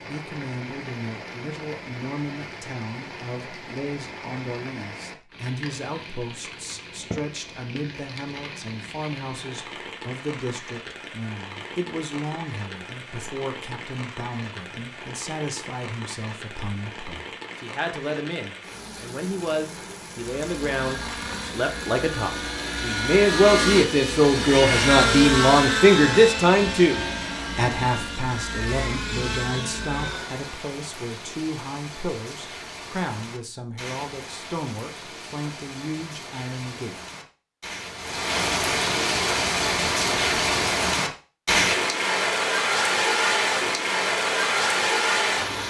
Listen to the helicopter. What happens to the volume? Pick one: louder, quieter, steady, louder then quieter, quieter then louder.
louder then quieter.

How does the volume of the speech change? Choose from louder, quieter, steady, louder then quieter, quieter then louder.
louder then quieter.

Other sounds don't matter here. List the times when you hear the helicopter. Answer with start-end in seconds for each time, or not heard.
20.3-30.6.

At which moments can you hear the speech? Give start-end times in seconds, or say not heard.
0.1-37.0.